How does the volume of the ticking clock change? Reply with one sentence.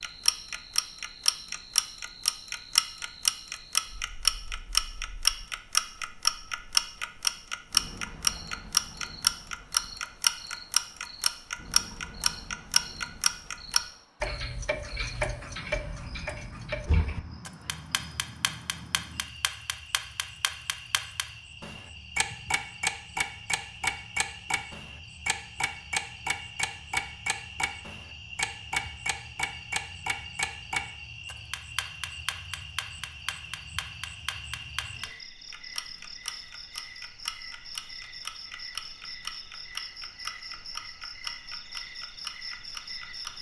The volume of the ticking clock goes down.